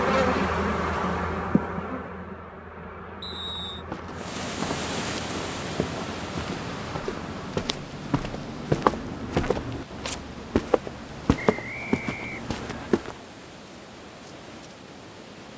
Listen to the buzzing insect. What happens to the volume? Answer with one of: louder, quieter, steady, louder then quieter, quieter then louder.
quieter.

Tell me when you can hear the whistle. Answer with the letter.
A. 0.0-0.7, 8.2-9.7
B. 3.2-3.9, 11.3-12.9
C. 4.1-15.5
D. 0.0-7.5
B.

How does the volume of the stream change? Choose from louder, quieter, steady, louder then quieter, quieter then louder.
quieter.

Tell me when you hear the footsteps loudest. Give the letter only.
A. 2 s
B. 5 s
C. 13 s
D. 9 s
D.